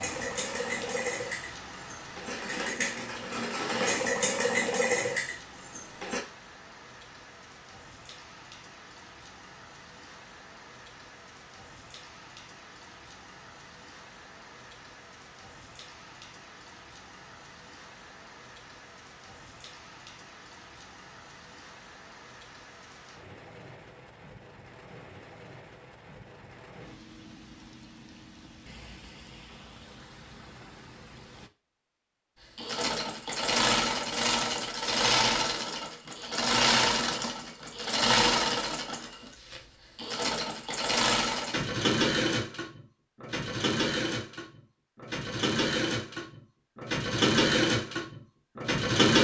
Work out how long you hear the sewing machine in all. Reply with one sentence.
You can hear the sewing machine for 23 seconds altogether.